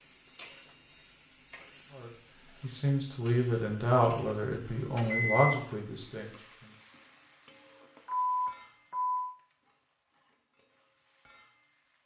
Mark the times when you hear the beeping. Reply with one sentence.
You can hear the beeping from 0.2 to 1.7 s, from 4.6 to 5.5 s and from 8.1 to 9.3 s.